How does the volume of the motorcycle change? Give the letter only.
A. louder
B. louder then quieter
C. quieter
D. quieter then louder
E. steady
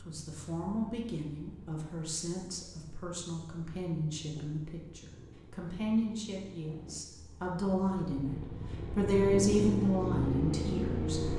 A.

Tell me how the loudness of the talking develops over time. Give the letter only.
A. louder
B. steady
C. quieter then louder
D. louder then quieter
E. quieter
A.